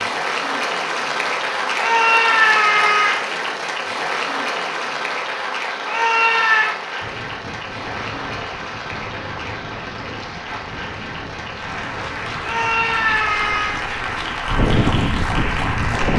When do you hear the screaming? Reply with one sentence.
The screaming can be heard from 1.8 to 3.2 s, from 5.8 to 6.8 s and from 12.4 to 13.8 s.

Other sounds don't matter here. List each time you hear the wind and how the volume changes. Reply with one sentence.
The wind can be heard from 7.0 to 16.1 s, getting louder.